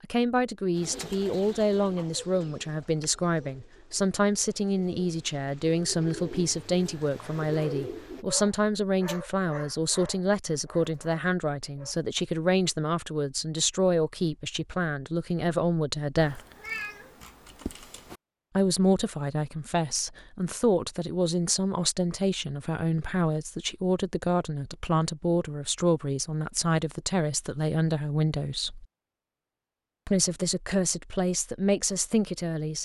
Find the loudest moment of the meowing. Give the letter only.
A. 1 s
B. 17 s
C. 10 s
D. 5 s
B.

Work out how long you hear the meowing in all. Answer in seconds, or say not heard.
2 s.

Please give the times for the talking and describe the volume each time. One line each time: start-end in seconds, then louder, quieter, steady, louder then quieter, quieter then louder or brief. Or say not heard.
0.0-16.4 steady
18.6-28.9 steady
30.1-32.8 brief.